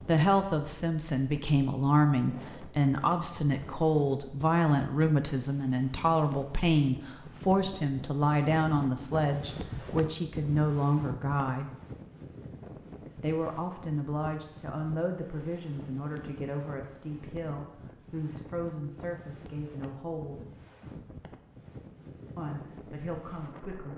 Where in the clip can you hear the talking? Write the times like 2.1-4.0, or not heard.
0.1-11.7, 13.2-20.4, 22.4-23.9.